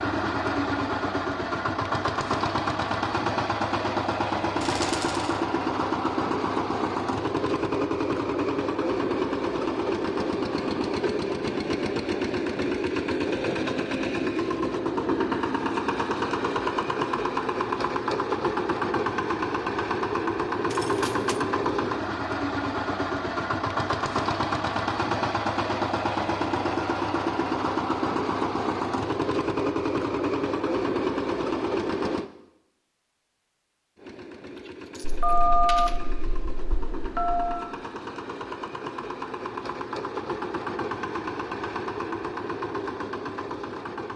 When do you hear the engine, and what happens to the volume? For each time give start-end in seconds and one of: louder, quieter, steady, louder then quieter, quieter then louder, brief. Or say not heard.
0.0-32.3 steady
34.0-44.1 louder.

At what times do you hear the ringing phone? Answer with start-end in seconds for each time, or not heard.
35.0-37.6.